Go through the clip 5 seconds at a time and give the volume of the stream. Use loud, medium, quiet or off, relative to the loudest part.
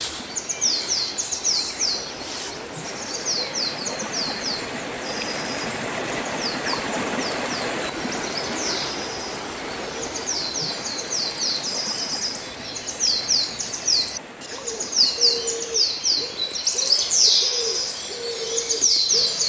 medium, loud, medium, quiet.